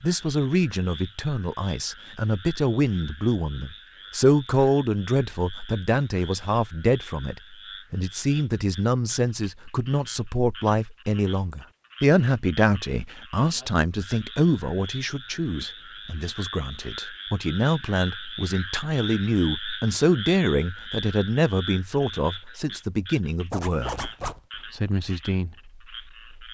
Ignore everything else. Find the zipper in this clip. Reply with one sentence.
The zipper can be heard from 23.5 to 24.4 s.